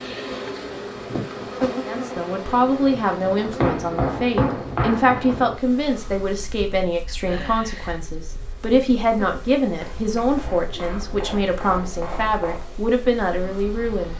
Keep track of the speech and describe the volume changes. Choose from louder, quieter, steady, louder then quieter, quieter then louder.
steady.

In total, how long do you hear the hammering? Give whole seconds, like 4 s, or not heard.
4 s.